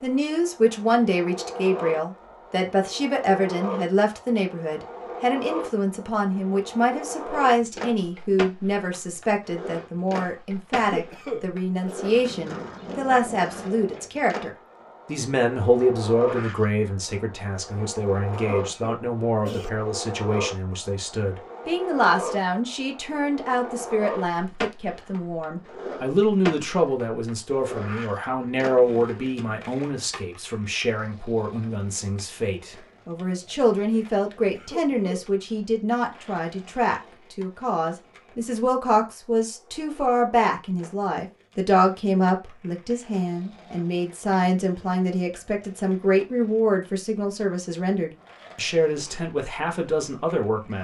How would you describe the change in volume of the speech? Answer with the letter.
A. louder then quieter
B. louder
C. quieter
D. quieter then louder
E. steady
E.